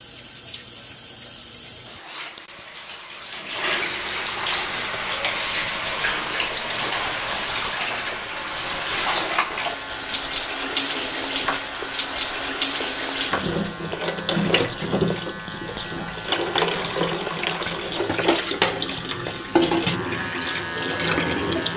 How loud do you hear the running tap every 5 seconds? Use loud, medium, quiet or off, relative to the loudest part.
medium, loud, loud, loud, loud.